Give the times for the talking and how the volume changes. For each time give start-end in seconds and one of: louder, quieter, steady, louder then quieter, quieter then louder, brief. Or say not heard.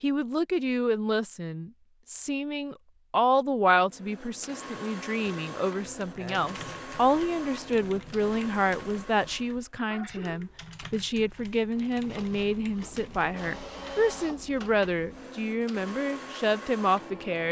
0.0-17.4 steady.